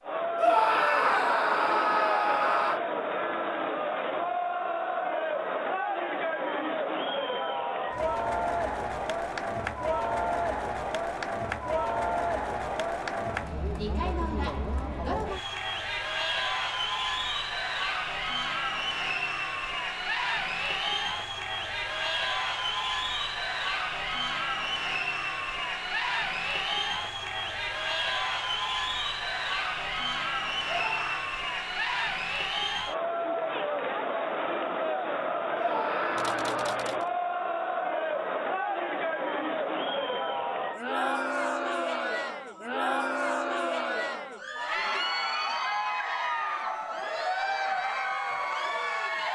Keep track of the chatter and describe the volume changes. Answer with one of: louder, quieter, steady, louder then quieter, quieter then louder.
steady.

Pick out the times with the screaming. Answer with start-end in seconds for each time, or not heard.
0.3-2.8, 30.6-31.2, 35.5-36.9.